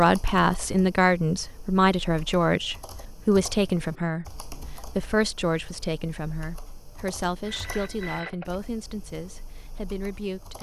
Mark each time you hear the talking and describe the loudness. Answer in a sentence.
You can hear the talking from 0.0 to 10.5 s, getting quieter.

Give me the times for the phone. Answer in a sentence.
You can hear the phone from 7.4 to 8.7 s.